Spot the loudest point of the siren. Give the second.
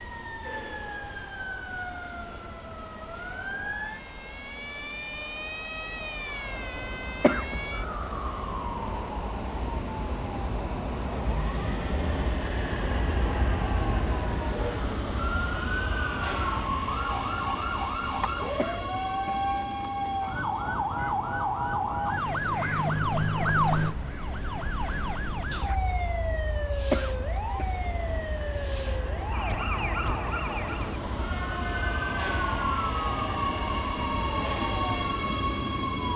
23 s.